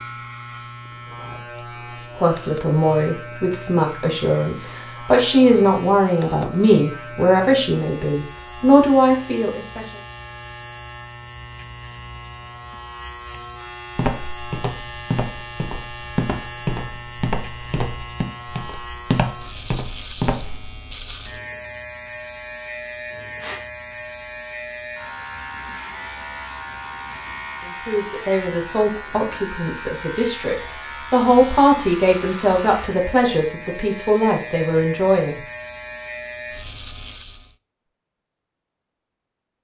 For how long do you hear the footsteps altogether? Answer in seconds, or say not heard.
7 s.